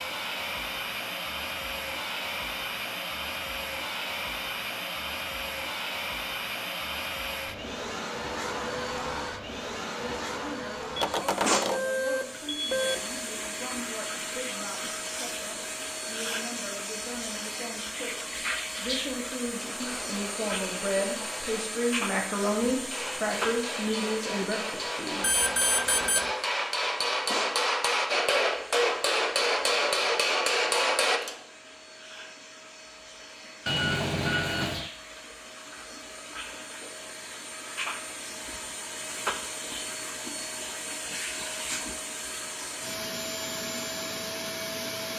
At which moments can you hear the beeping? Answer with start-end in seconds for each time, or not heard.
10.9-12.9, 25.2-26.4, 33.6-34.9.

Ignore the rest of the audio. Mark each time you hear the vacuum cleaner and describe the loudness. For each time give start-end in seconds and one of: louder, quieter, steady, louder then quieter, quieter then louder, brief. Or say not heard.
0.0-45.1 quieter then louder.